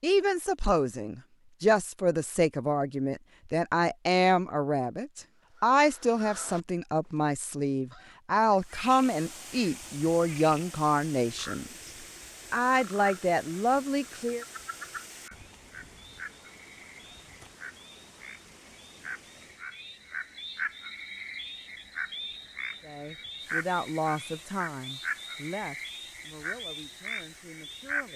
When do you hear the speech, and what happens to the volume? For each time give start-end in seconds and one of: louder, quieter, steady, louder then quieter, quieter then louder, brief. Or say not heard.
0.0-11.7 steady
12.5-14.4 brief
22.8-28.1 quieter.